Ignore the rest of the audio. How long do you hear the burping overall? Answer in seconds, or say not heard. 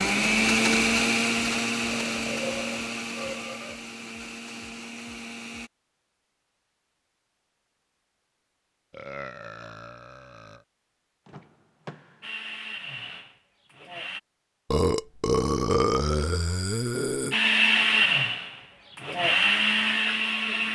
6 s.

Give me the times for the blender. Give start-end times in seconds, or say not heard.
0.0-5.7, 12.2-14.2, 17.3-20.7.